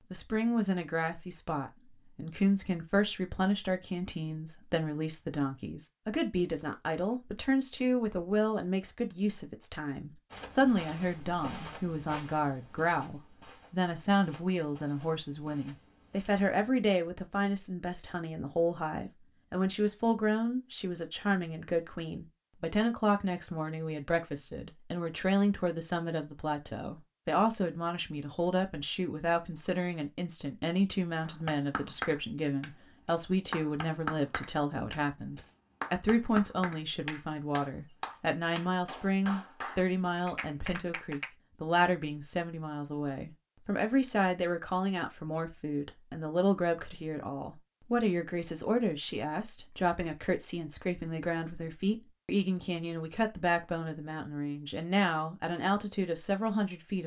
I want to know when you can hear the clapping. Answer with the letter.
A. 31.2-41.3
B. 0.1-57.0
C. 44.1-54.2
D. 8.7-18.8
A.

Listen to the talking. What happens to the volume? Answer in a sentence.
The loudness of the talking stays about the same.